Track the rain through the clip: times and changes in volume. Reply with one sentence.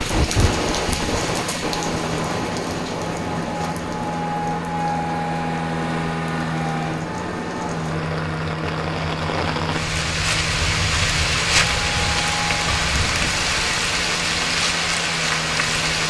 You can hear the rain from 0.0 to 16.0 s, getting quieter then louder.